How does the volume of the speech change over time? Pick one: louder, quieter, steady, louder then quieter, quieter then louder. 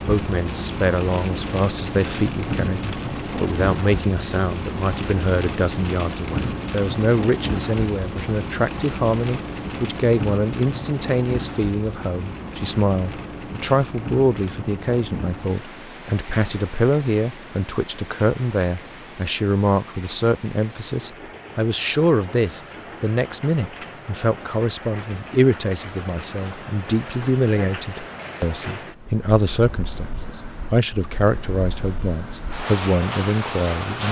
steady.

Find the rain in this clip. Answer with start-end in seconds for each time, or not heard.
0.0-34.0.